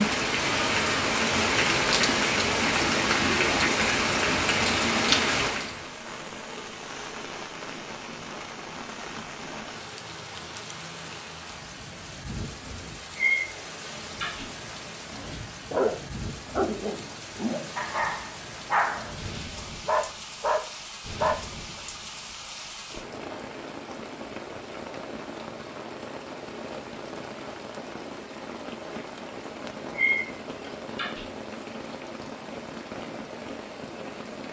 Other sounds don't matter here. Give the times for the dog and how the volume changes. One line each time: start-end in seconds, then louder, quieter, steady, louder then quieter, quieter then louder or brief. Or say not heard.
15.1-21.8 quieter then louder.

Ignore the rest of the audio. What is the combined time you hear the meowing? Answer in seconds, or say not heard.
3 s.